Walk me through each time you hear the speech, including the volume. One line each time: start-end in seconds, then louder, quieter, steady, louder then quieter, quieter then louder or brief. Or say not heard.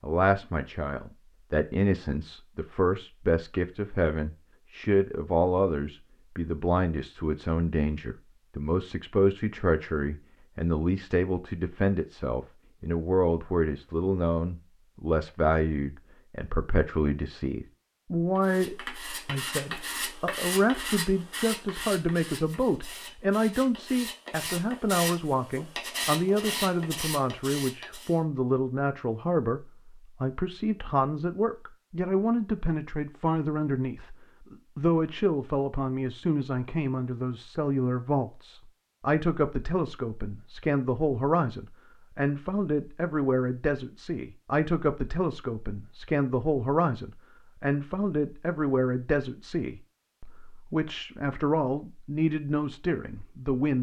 0.0-53.7 steady.